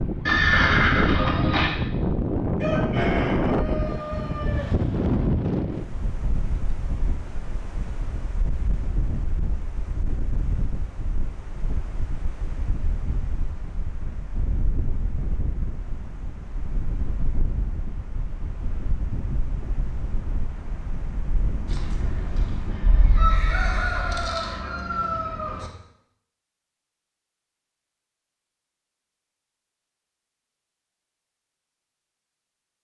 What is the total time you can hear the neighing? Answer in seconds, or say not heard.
3 s.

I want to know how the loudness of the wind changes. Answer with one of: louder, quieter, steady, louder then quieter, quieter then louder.
quieter.